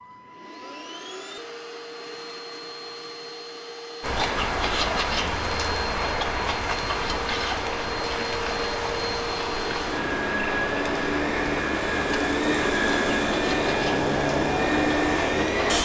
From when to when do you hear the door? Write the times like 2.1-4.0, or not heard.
not heard.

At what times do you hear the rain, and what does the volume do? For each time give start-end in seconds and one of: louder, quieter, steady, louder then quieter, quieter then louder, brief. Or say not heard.
4.0-15.8 quieter.